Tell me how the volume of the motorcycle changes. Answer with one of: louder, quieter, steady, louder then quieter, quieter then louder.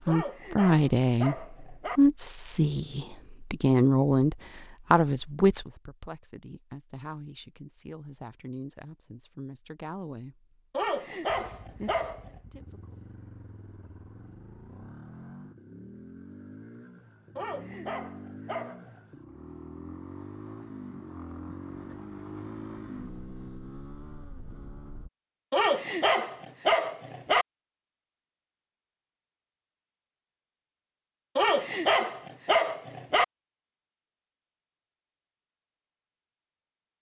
louder.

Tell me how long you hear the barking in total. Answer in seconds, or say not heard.
9 s.